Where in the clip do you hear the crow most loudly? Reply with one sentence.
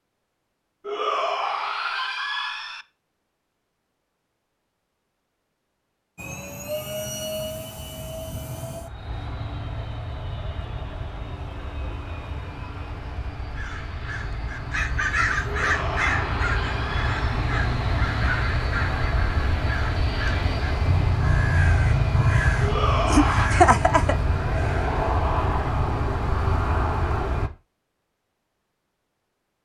The loudest moment of the crow is at 24 seconds.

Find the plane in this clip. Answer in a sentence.
The plane can be heard from 6.2 to 27.5 s.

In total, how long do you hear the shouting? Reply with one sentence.
You can hear the shouting for 5 seconds altogether.